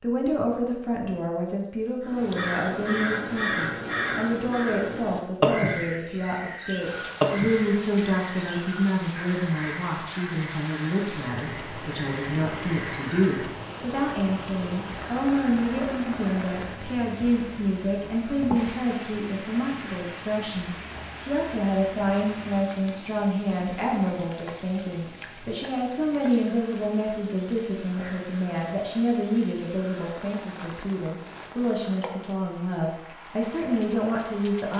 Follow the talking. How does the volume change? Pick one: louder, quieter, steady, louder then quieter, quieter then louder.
steady.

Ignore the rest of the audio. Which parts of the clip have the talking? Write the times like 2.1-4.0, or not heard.
0.0-34.7.